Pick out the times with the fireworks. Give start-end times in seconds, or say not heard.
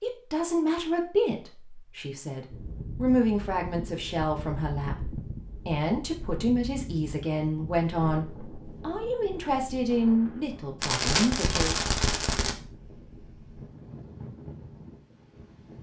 10.8-12.6.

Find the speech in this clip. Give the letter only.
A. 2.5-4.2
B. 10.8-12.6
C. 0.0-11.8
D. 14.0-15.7
C.